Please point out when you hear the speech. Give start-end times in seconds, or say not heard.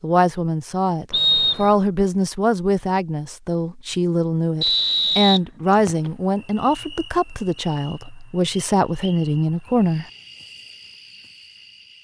0.0-10.1.